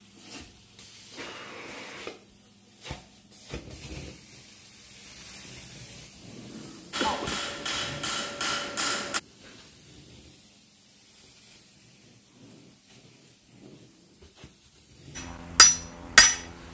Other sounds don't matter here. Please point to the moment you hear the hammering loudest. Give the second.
16 s.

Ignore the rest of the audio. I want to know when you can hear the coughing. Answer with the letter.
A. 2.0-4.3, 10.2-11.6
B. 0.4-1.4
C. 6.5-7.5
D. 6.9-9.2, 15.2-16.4
C.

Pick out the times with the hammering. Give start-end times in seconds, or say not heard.
6.9-9.2, 15.2-16.4.